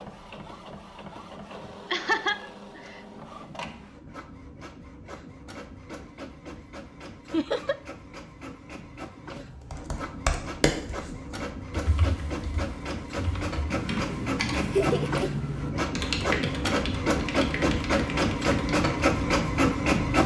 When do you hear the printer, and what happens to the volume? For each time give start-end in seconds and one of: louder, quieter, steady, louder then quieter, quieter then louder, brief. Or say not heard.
0.0-20.2 louder.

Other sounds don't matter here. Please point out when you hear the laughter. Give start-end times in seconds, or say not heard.
1.9-3.0, 7.3-7.8, 14.5-15.3.